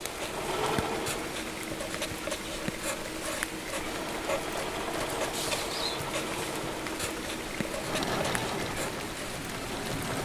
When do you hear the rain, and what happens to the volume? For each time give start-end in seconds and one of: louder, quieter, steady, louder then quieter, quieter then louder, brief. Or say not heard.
0.0-10.2 steady.